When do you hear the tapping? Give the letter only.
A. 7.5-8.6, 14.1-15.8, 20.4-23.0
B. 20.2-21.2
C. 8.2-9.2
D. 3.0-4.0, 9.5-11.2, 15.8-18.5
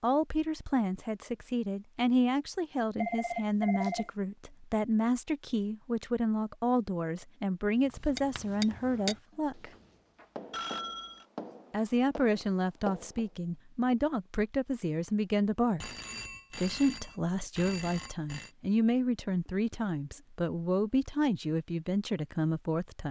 C.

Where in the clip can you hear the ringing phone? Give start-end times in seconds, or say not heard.
3.0-4.0, 9.5-11.2, 15.8-18.5.